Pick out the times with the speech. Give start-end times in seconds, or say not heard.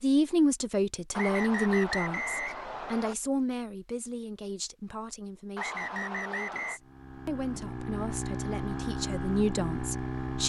0.0-10.4.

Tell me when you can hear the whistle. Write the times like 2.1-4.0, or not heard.
1.1-3.1, 5.5-6.8.